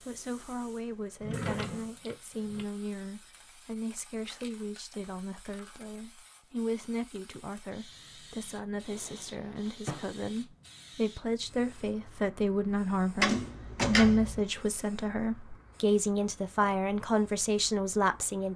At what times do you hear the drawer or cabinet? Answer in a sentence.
You can hear the drawer or cabinet from 1.2 to 2.6 s, from 8.9 to 10.4 s and from 13.2 to 14.4 s.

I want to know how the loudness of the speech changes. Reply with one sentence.
The volume of the speech goes up.